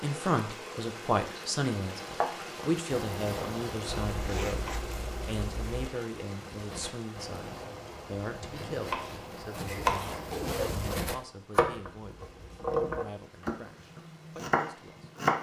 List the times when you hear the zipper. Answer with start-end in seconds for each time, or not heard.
4.0-5.9, 9.8-11.2.